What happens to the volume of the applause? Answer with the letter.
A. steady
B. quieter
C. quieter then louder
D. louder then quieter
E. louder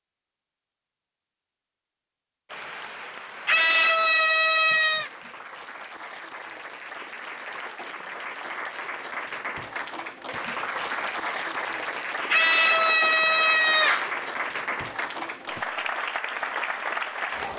E.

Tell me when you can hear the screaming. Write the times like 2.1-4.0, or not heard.
3.5-5.1, 12.3-14.1.